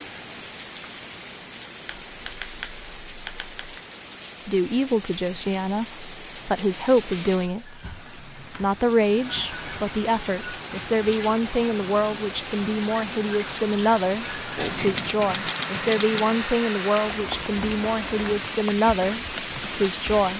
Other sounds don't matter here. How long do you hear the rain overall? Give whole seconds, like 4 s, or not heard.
20 s.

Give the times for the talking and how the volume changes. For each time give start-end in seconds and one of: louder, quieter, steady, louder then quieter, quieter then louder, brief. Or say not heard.
4.4-20.3 steady.